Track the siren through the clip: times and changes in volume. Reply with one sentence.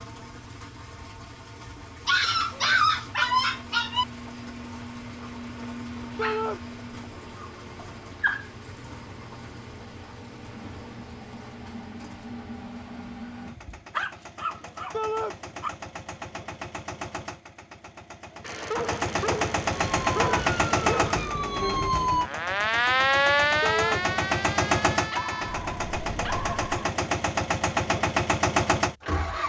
The siren can be heard from 19.8 to 26.6 s, getting louder then quieter.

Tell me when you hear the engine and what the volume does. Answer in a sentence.
You can hear the engine from 0.0 to 29.4 s, getting louder.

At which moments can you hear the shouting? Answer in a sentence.
The shouting can be heard from 6.2 to 6.6 s, from 14.9 to 15.3 s and from 23.6 to 24.1 s.